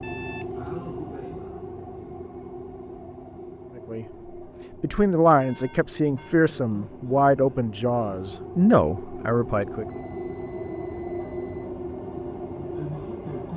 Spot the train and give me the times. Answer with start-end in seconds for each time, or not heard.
0.0-13.5.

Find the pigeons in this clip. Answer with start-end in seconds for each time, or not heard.
not heard.